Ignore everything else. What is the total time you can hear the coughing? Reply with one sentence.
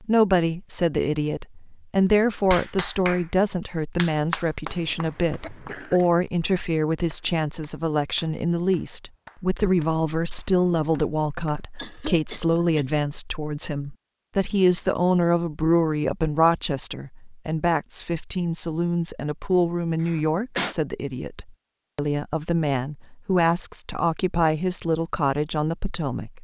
The coughing can be heard for 3 seconds in total.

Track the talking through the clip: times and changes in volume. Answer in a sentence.
The talking can be heard from 0.0 to 26.3 s, at a steady volume.